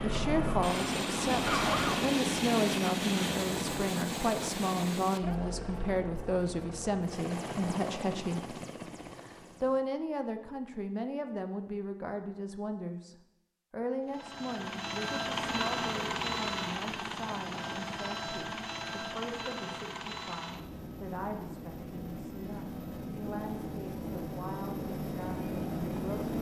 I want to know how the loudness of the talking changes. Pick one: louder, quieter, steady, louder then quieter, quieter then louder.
quieter.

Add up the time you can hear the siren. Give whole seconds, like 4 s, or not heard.
2 s.